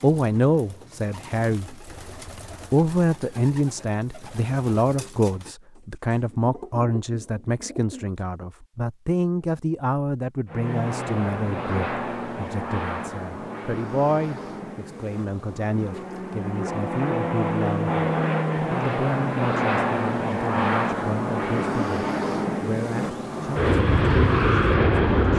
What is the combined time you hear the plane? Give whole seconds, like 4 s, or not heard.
15 s.